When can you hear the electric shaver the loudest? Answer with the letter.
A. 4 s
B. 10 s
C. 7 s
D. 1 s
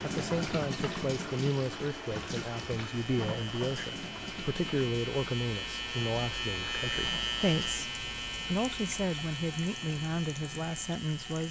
C.